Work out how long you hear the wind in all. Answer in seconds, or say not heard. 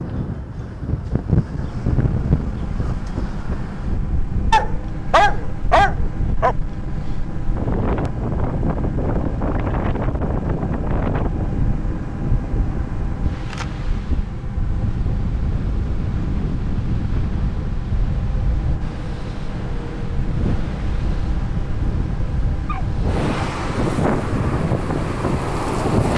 26 s.